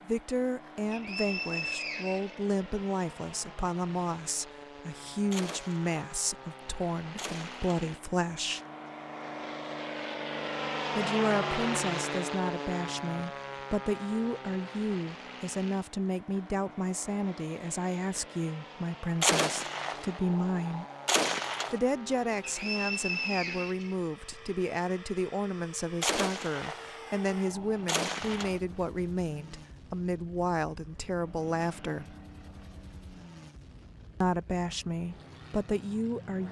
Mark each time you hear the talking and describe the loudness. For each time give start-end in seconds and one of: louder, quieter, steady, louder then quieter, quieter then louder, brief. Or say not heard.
0.1-8.6 steady
10.9-20.9 steady
21.7-32.0 steady
34.2-36.4 brief.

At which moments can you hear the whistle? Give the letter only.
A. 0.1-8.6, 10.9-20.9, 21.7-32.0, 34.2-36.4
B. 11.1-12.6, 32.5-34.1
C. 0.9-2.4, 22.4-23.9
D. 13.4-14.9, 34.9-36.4
C.